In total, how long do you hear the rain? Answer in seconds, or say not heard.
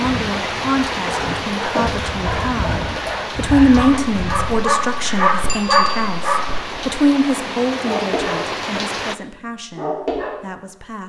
9 s.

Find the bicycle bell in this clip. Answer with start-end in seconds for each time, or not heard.
5.5-6.0.